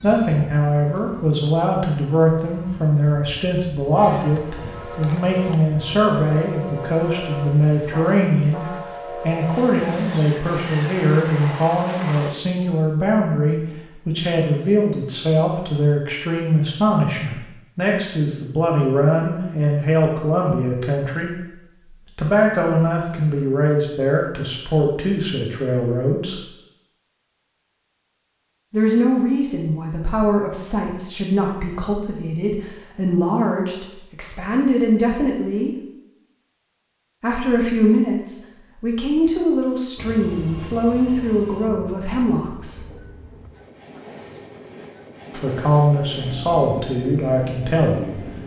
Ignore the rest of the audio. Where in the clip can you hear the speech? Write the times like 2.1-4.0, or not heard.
0.0-21.6, 22.1-26.4, 28.7-35.8, 37.2-42.9, 45.3-48.2.